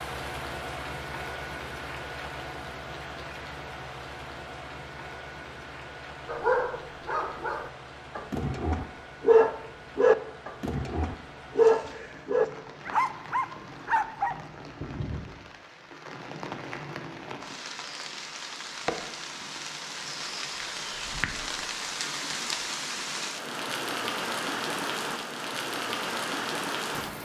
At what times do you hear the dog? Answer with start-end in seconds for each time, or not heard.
6.2-14.3.